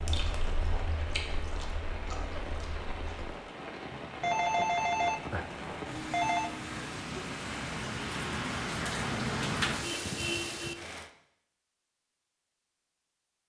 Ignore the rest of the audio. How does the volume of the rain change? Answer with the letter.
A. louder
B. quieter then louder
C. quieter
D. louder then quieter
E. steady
A.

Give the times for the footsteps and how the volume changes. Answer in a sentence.
The footsteps can't be heard in this clip.